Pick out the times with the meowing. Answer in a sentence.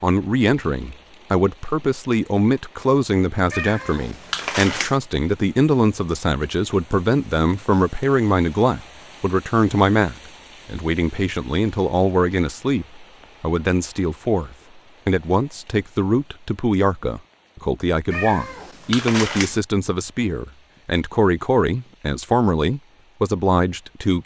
The meowing can be heard from 3.5 to 5.0 s and from 18.1 to 19.6 s.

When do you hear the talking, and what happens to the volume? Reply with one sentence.
The talking can be heard from 0.0 to 24.2 s, at a steady volume.